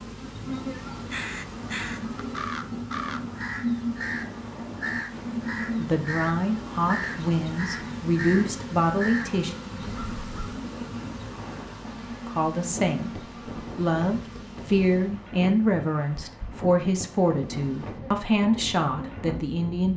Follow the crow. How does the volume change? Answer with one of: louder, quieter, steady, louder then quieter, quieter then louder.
steady.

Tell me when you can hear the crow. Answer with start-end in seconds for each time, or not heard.
0.9-10.7.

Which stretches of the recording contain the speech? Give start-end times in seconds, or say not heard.
5.8-9.6, 12.2-19.9.